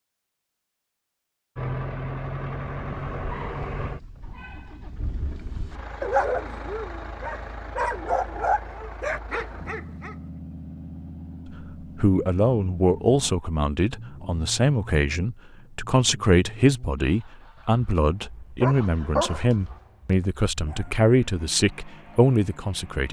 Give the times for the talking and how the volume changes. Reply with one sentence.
You can hear the talking from 11.6 to 23.0 s, at a steady volume.